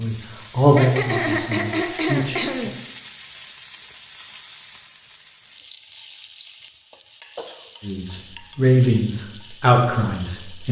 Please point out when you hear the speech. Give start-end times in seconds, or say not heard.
0.0-2.7, 7.8-10.6.